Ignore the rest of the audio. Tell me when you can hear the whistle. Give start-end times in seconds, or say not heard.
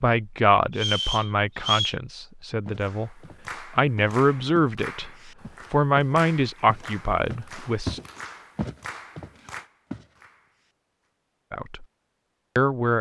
0.7-1.9.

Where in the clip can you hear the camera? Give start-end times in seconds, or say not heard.
not heard.